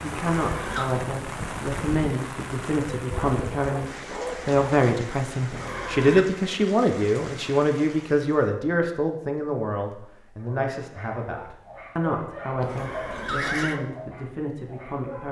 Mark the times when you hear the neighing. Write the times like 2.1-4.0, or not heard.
0.1-0.9, 5.5-6.2, 12.6-13.8.